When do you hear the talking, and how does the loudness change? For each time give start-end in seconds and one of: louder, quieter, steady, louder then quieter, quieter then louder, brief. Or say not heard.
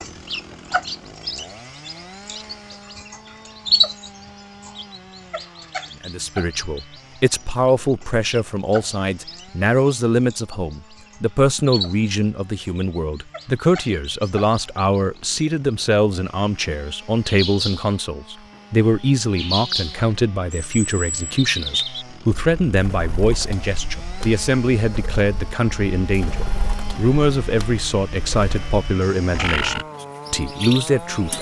6.0-31.3 steady.